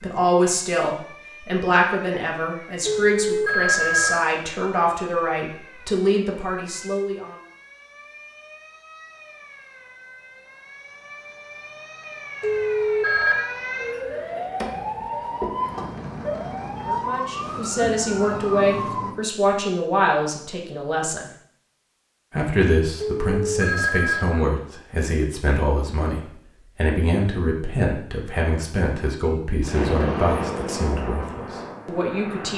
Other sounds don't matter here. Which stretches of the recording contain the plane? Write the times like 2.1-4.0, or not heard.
29.6-32.5.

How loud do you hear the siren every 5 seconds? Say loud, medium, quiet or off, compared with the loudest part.
quiet, quiet, medium, loud, off, off, off.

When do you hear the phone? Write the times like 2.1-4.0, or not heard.
2.9-4.2, 12.4-13.5, 23.0-24.3.